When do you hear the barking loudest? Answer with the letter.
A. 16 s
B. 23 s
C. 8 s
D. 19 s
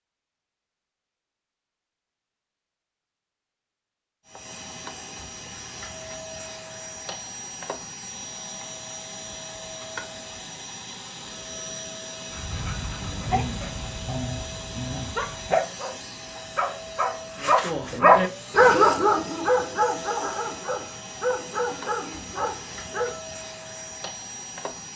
D.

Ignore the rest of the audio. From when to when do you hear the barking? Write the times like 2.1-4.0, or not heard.
12.3-23.2.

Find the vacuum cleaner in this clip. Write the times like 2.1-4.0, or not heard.
4.2-24.9.